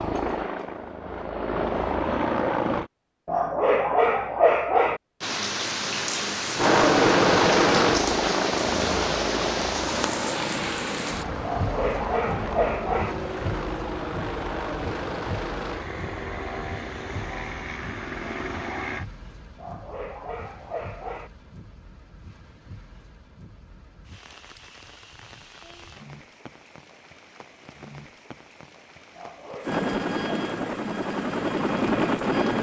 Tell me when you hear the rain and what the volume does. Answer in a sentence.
You can hear the rain from 5.2 to 32.5 s, getting quieter.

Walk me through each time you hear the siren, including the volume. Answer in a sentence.
You can't hear the siren here.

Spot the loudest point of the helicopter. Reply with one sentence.
The loudest moment of the helicopter is at 7 seconds.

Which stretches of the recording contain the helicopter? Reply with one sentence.
You can hear the helicopter from 0.0 to 2.9 s, from 6.5 to 19.1 s and from 29.6 to 32.5 s.